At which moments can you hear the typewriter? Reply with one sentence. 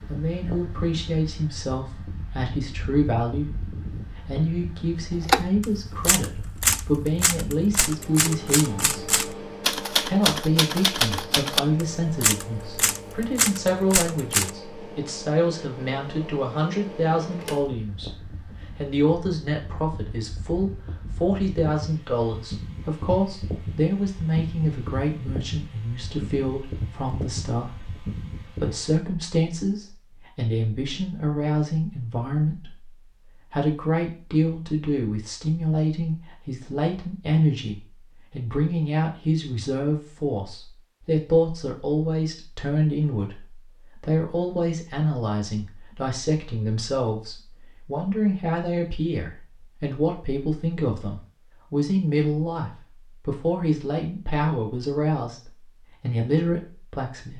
The typewriter can be heard from 5.1 to 14.5 s.